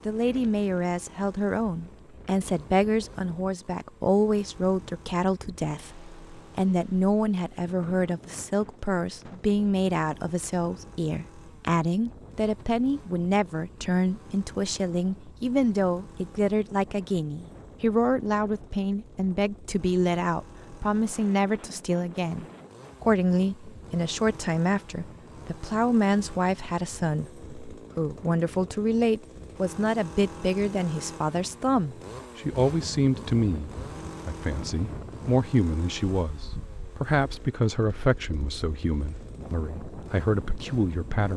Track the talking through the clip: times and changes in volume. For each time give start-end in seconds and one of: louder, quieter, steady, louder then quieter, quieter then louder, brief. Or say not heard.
0.1-41.3 steady.